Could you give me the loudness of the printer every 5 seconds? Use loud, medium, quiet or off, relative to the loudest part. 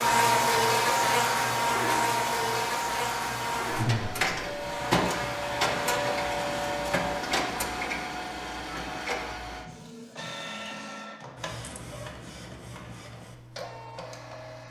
loud, loud, medium.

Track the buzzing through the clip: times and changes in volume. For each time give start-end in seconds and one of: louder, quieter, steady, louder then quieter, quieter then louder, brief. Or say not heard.
0.0-8.1 quieter.